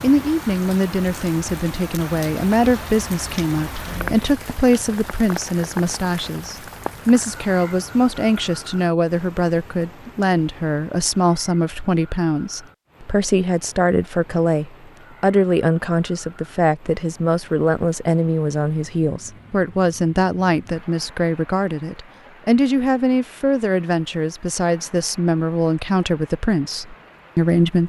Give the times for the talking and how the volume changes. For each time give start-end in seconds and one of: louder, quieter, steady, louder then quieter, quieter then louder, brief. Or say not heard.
0.0-27.8 steady.